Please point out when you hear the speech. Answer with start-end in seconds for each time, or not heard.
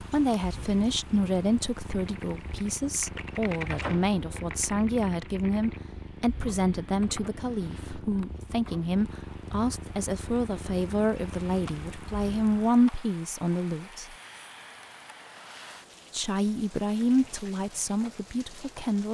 0.0-14.2, 16.1-19.1.